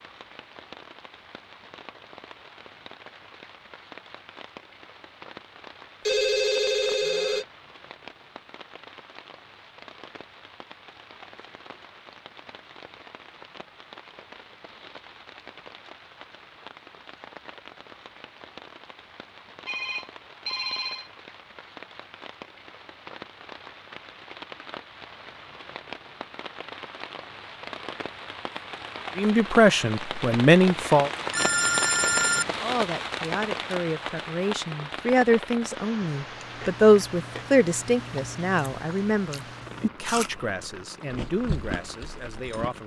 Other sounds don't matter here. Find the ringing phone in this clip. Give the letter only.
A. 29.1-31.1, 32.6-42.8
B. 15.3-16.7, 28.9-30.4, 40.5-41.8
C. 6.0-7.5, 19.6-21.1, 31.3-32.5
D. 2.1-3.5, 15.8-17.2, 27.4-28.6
C.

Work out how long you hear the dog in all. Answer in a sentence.
You can't hear the dog here.